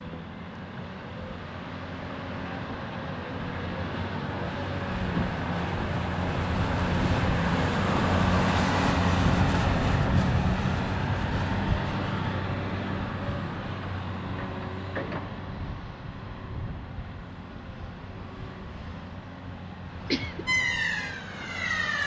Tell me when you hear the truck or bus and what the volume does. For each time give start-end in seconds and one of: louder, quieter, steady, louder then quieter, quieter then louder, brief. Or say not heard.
0.0-22.0 louder then quieter.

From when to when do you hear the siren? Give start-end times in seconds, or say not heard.
20.4-22.0.